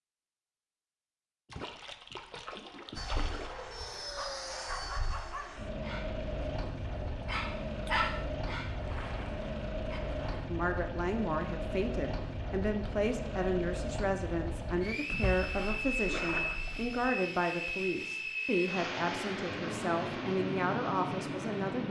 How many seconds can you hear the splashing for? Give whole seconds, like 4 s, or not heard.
6 s.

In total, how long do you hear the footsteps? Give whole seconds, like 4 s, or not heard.
not heard.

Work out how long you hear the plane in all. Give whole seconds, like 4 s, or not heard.
19 s.